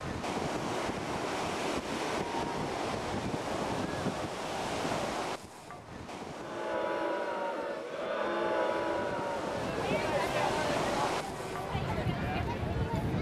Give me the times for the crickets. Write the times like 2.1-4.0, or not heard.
not heard.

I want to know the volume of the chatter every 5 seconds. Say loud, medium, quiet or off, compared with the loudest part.
off, loud, loud.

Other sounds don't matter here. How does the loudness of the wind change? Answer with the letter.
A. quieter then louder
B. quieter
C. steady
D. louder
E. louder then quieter
A.